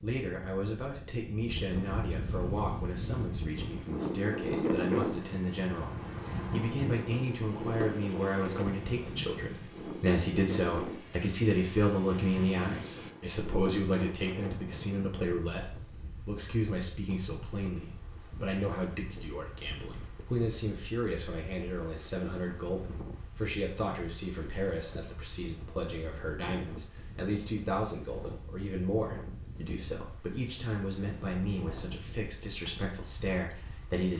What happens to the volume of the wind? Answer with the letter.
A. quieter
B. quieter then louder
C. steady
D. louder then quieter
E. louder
A.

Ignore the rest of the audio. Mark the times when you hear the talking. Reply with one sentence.
You can hear the talking from 0.0 to 34.1 s.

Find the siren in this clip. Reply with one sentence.
You can't hear the siren here.